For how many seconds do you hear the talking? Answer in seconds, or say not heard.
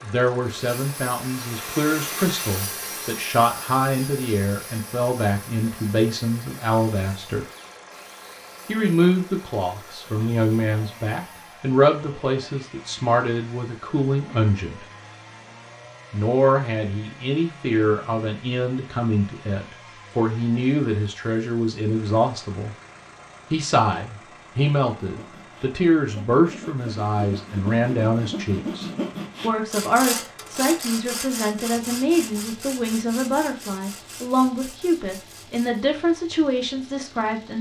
34 s.